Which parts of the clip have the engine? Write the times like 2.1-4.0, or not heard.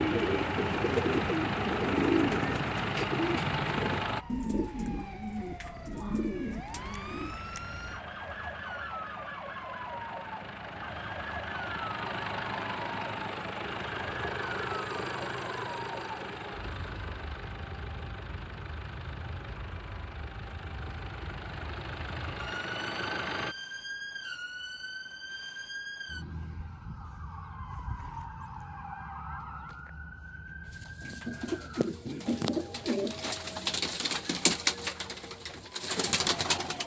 0.0-4.2, 6.8-23.6.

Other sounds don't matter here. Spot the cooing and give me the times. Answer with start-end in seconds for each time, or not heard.
0.0-7.4, 30.7-36.8.